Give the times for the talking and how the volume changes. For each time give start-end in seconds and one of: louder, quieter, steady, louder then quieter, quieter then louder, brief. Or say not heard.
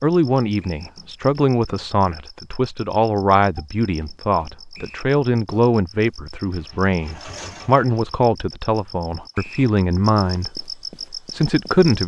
0.0-12.0 steady.